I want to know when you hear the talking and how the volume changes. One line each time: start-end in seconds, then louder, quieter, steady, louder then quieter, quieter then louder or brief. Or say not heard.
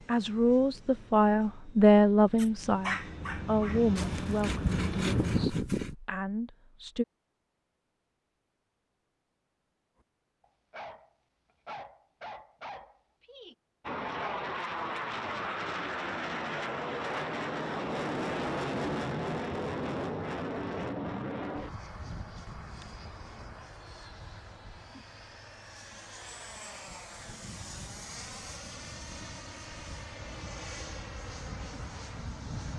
0.1-7.0 quieter.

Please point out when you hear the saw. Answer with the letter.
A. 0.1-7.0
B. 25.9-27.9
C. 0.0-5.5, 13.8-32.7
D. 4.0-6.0
D.